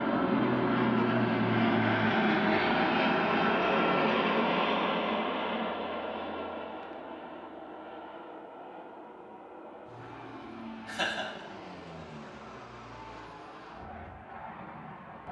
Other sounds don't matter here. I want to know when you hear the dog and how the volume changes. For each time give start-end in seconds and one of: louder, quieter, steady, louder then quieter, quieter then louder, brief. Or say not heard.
not heard.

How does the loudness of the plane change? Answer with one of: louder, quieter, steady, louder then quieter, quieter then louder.
quieter.